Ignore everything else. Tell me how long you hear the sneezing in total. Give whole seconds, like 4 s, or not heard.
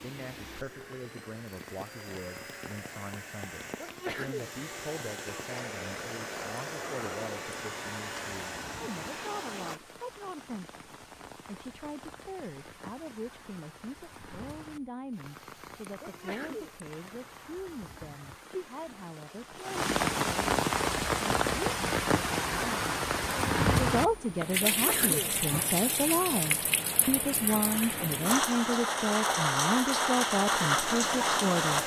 2 s.